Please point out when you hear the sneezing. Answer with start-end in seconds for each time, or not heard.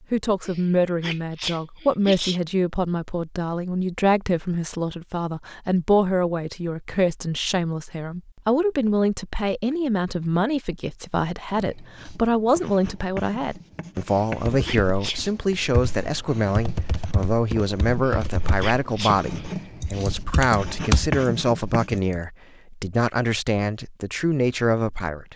0.5-2.4, 14.1-15.2, 18.0-19.4.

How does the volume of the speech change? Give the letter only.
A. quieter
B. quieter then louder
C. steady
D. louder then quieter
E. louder
C.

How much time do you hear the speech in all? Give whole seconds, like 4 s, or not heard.
25 s.